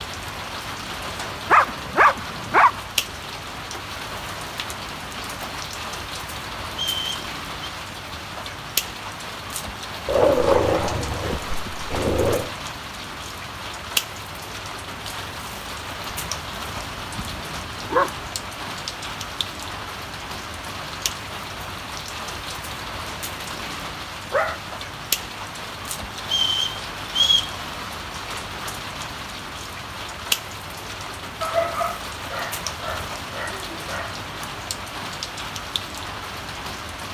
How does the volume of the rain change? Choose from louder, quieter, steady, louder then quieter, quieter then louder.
steady.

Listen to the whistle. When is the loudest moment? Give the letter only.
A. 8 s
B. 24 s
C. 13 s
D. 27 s
D.